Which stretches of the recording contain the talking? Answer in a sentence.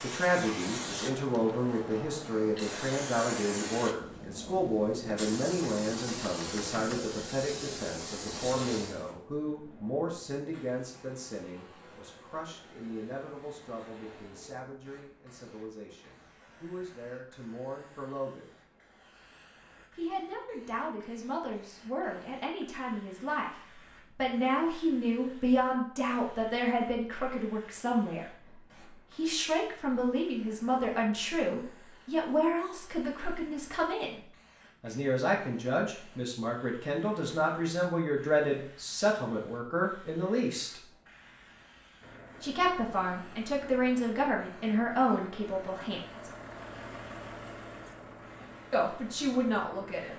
The talking can be heard from 0.0 to 18.6 s, from 19.9 to 28.4 s, from 29.1 to 34.2 s, from 34.8 to 40.8 s, from 42.4 to 46.3 s and from 48.7 to 50.1 s.